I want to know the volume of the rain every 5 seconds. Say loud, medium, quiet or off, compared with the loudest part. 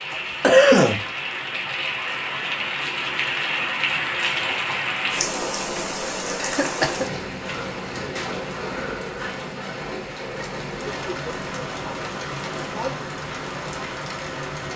loud, loud, medium.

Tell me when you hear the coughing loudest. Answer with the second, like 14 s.
1 s.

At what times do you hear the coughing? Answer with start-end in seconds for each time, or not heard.
0.1-1.1, 6.3-7.0, 10.7-13.1.